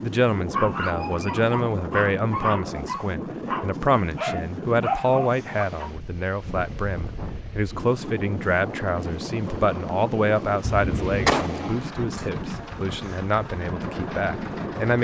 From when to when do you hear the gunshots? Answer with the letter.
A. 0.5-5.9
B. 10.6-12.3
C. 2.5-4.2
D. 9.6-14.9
B.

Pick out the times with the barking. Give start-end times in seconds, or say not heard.
0.5-5.9.